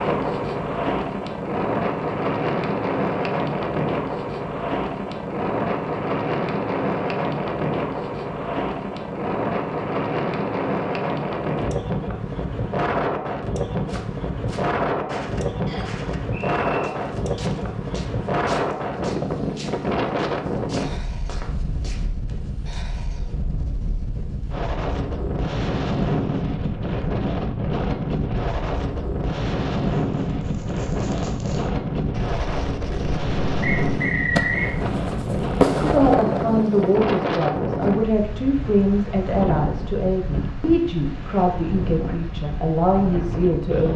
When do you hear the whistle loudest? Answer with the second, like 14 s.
34 s.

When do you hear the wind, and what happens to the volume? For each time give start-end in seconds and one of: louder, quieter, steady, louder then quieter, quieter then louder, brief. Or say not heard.
0.0-43.9 steady.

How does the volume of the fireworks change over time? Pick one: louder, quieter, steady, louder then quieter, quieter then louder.
louder.